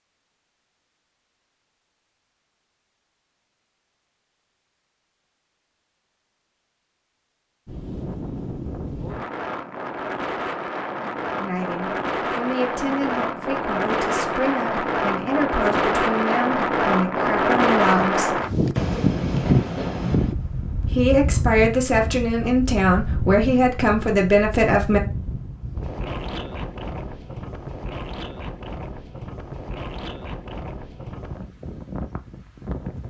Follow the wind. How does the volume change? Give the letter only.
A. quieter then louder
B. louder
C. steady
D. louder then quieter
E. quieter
D.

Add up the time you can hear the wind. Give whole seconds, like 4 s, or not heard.
25 s.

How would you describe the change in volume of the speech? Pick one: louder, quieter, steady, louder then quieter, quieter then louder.
louder.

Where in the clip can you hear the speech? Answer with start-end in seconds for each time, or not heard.
11.3-18.4, 20.8-25.0.